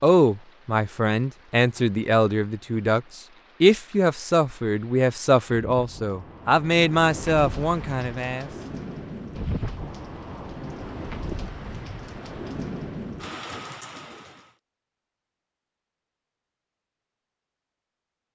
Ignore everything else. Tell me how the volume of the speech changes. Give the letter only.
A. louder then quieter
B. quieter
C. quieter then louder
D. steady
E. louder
D.